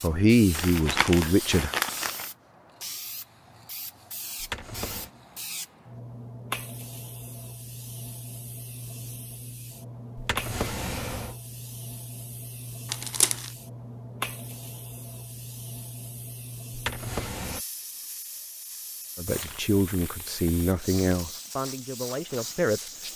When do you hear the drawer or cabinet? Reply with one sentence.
You can hear the drawer or cabinet from 4.4 to 5.1 s, from 10.2 to 11.3 s and from 16.7 to 17.6 s.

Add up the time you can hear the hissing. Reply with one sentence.
You can hear the hissing for 23 seconds altogether.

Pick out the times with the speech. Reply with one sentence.
You can hear the speech from 0.0 to 1.8 s and from 19.1 to 23.1 s.